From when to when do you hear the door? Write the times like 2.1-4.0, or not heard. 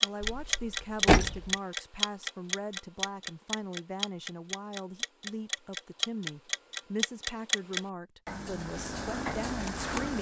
0.2-1.5.